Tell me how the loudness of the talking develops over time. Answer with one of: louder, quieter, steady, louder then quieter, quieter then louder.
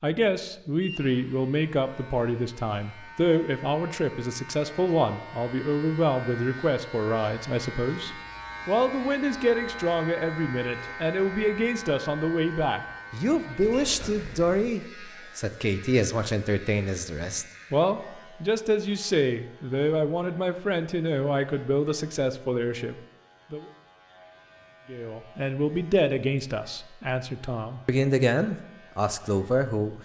steady.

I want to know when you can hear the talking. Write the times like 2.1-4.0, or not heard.
0.0-23.6, 24.9-30.0.